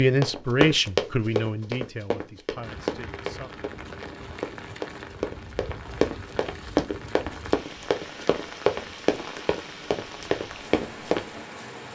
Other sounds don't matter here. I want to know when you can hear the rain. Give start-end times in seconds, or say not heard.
2.6-11.8.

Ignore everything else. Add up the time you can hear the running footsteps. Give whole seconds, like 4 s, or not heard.
11 s.